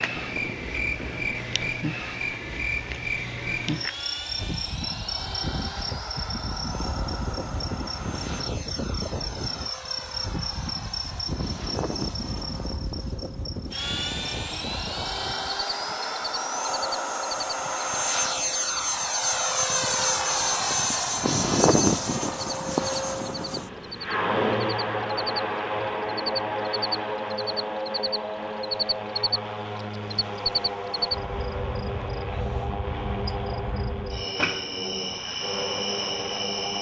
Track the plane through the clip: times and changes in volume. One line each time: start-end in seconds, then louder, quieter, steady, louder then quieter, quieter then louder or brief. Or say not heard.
0.0-36.7 louder then quieter.